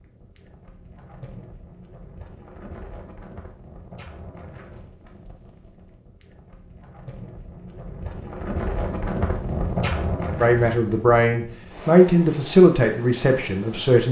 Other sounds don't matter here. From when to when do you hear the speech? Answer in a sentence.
You can hear the speech from 10.4 to 14.0 s.